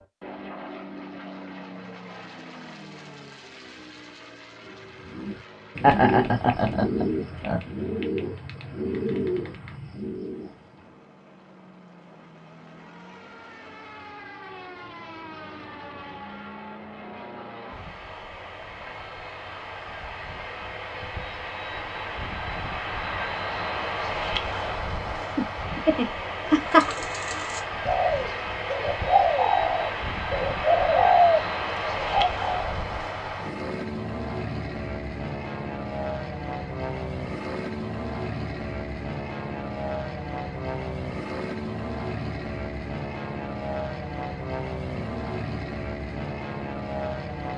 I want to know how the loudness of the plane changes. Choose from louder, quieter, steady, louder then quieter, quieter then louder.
louder.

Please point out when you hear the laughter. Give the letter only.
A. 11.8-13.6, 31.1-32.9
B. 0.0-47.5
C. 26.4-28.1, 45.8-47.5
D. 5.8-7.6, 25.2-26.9
D.